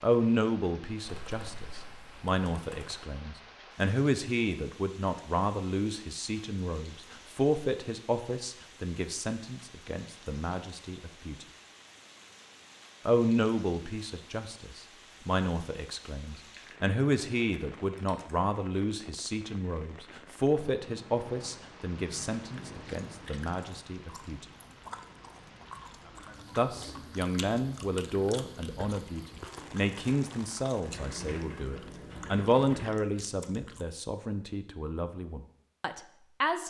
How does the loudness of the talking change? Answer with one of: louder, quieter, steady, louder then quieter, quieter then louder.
steady.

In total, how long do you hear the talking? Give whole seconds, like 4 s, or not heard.
33 s.